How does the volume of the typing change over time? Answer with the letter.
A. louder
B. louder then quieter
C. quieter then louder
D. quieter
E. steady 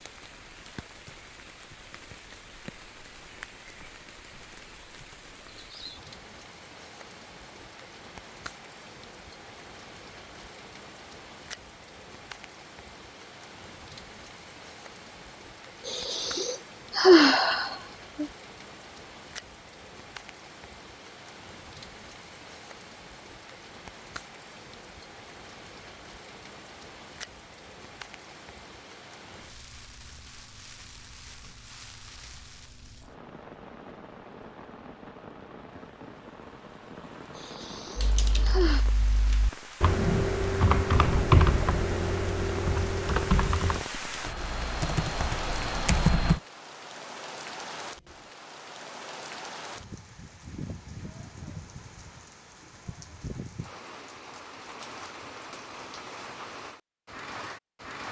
B.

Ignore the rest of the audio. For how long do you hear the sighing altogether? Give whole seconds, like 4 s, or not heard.
4 s.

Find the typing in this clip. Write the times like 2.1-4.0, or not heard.
38.0-46.4.